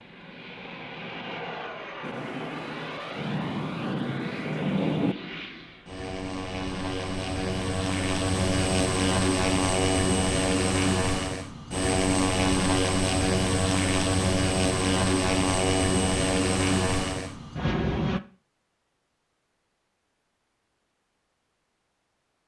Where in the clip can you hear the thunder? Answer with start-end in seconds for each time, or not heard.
2.0-5.2.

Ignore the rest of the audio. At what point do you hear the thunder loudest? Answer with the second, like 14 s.
5 s.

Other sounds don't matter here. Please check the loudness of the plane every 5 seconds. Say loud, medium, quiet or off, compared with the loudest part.
quiet, loud, loud, loud, off.